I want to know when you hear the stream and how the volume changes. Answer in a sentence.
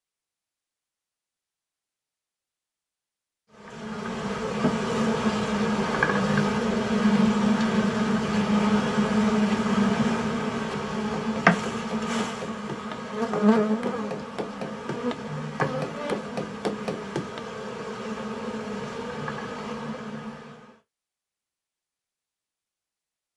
You can't hear the stream here.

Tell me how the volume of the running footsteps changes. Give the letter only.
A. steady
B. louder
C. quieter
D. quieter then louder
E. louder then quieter
B.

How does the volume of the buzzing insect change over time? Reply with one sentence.
The loudness of the buzzing insect goes down.